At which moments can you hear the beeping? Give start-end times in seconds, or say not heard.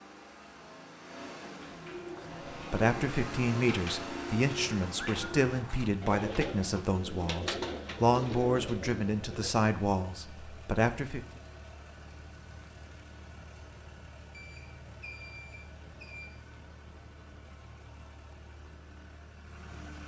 14.3-16.3.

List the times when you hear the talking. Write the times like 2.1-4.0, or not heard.
2.7-11.2.